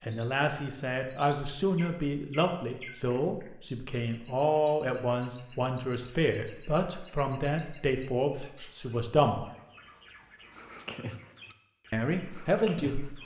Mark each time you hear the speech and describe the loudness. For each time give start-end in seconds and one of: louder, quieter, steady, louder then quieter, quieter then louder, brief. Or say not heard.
0.0-9.4 steady
11.9-13.2 brief.